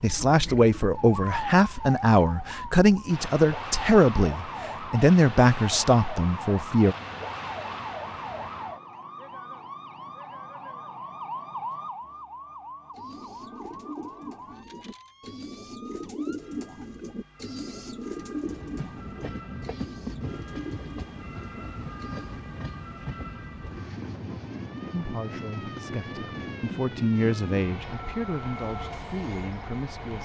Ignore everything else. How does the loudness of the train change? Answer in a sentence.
The volume of the train stays about the same.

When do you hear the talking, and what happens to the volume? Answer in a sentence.
The talking can be heard from 0.0 to 7.0 s, at a steady volume; and from 24.9 to 30.2 s, getting louder then quieter.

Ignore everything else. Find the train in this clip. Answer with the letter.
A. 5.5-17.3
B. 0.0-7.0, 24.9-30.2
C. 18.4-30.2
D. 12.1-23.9
C.